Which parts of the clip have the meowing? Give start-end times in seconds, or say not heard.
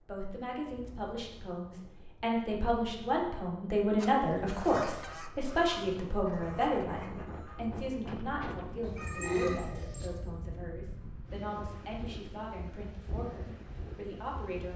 8.8-10.2.